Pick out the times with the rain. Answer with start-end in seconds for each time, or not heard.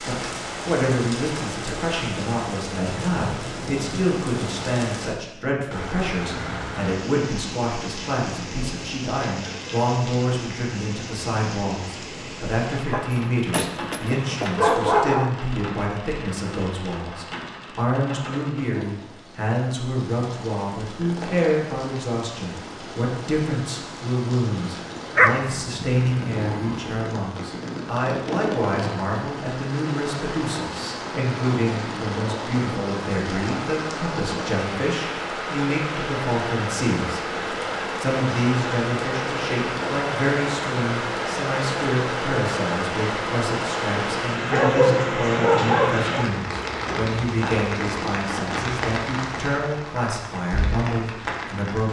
0.0-51.8.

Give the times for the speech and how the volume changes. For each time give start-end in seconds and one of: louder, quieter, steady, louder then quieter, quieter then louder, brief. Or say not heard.
0.1-37.2 steady
38.0-51.8 steady.